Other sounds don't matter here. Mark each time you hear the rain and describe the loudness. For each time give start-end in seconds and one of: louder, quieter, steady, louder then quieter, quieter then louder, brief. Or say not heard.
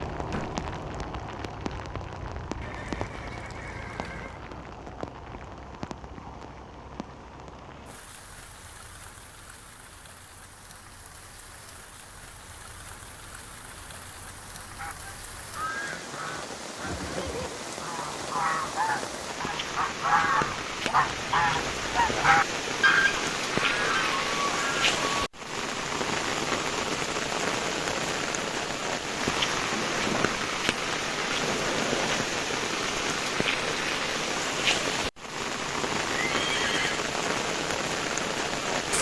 0.0-38.9 quieter then louder.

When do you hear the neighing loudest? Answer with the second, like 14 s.
37 s.